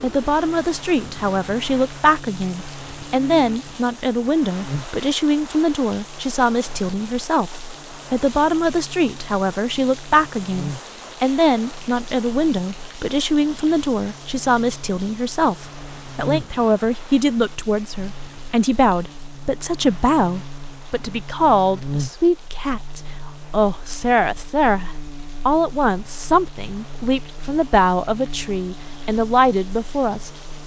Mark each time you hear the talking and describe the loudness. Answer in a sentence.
You can hear the talking from 0.0 to 30.3 s, at a steady volume.